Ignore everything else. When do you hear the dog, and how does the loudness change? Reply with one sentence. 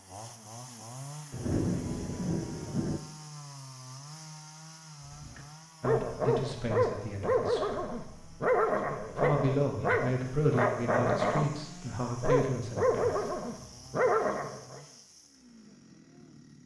You can hear the dog from 5.1 to 14.8 s, at a steady volume.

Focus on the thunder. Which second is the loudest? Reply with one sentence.
The loudest moment of the thunder is at 2 seconds.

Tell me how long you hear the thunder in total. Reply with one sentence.
You can hear the thunder for 2 seconds altogether.